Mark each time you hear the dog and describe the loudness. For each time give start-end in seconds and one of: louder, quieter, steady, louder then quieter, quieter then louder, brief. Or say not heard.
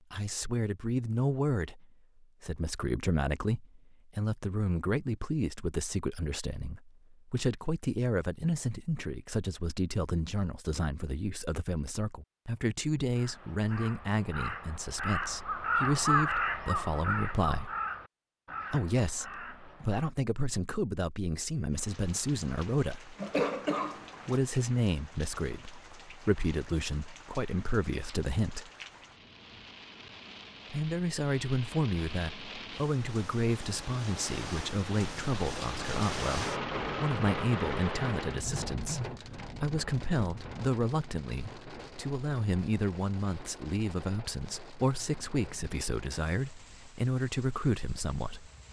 not heard.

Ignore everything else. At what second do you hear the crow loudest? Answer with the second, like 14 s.
16 s.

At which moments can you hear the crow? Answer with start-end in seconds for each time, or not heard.
13.2-20.1.